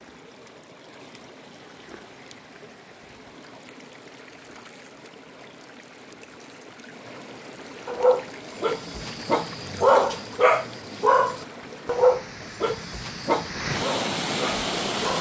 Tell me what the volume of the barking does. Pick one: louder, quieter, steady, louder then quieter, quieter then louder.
louder then quieter.